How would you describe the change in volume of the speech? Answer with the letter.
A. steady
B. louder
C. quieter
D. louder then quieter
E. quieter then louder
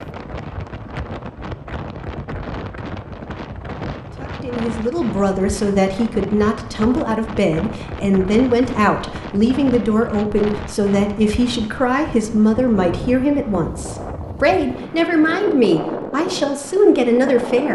A.